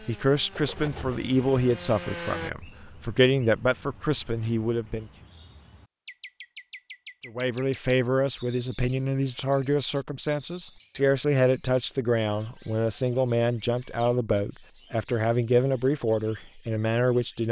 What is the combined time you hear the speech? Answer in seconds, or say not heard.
15 s.